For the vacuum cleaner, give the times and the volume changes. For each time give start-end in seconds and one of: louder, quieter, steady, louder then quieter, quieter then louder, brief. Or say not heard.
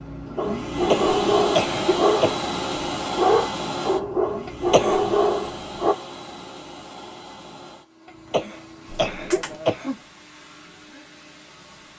0.0-11.9 quieter.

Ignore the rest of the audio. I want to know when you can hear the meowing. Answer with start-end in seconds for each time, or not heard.
8.8-9.6.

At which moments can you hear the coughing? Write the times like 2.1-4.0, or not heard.
0.8-2.3, 4.5-5.0, 8.1-9.9.